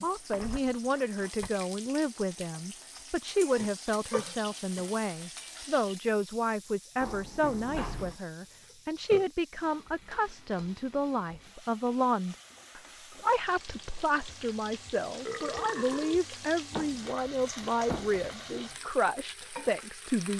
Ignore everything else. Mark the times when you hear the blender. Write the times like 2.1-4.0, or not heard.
not heard.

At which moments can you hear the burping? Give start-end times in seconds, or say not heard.
3.5-5.0, 8.7-9.3, 15.2-16.2.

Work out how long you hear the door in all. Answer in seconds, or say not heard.
4 s.